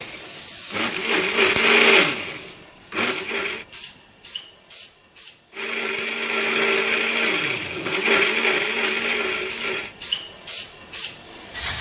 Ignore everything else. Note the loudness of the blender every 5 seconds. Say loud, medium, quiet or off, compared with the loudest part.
loud, loud, off.